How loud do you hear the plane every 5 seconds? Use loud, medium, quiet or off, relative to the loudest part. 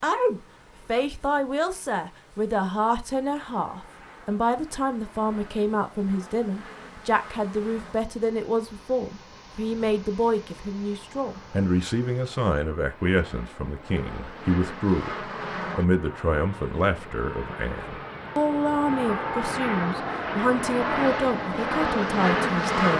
quiet, quiet, quiet, medium, loud.